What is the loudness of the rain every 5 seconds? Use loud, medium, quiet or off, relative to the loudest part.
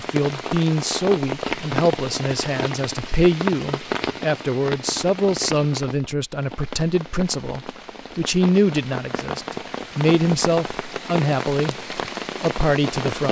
loud, medium, loud.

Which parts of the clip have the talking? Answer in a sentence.
The talking can be heard from 0.0 to 13.2 s.